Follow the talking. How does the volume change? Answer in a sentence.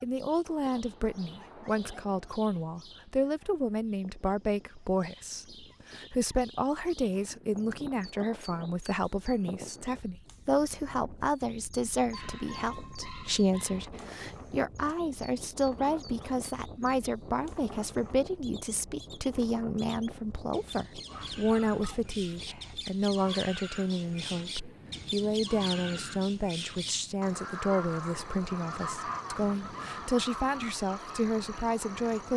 The loudness of the talking stays about the same.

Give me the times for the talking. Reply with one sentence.
You can hear the talking from 0.0 to 32.3 s.